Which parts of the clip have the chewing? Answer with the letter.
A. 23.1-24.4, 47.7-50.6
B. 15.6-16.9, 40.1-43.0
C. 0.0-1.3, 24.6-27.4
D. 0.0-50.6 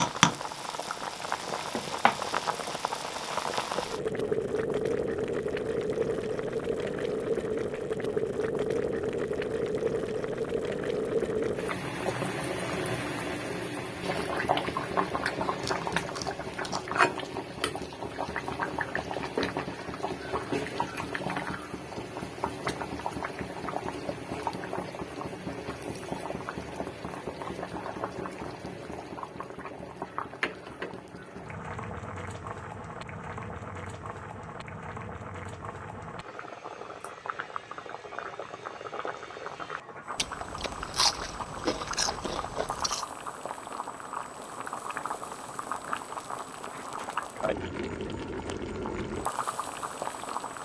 B.